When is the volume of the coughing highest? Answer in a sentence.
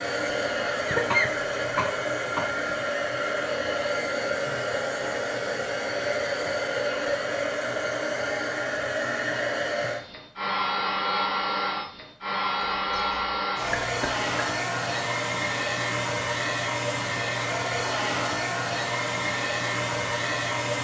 The loudest moment of the coughing is at 1 second.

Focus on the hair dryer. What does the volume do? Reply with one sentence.
The loudness of the hair dryer stays about the same.